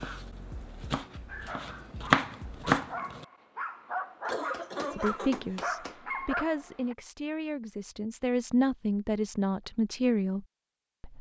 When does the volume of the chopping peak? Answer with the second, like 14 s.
2 s.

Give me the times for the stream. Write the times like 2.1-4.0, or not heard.
not heard.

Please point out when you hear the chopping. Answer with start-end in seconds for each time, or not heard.
0.0-3.2.